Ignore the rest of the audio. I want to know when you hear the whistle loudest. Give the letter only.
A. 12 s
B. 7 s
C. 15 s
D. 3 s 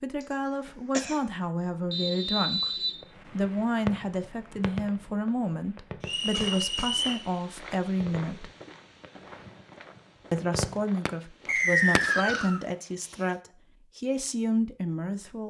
A.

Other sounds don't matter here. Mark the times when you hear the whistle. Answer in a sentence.
The whistle can be heard from 1.9 to 3.0 s, from 6.0 to 7.2 s and from 11.4 to 12.6 s.